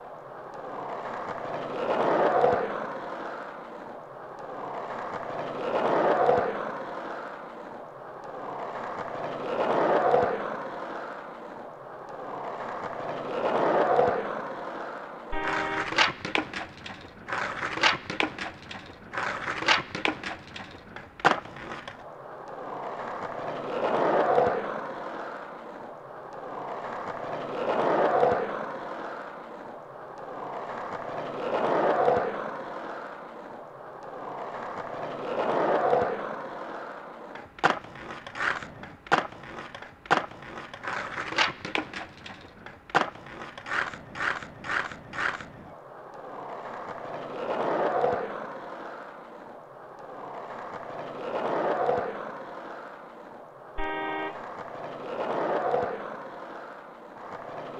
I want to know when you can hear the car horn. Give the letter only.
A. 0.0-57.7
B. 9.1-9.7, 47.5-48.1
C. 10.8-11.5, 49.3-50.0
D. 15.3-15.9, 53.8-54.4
D.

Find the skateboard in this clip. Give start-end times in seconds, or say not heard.
0.0-57.7.